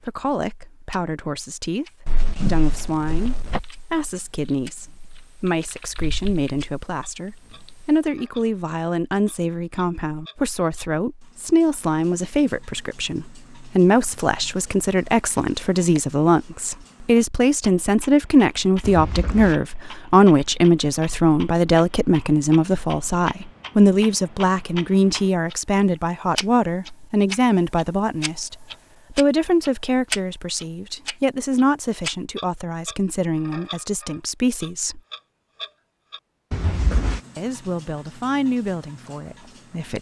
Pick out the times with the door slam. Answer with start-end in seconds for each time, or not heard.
2.0-3.6, 18.8-19.6, 36.5-37.2.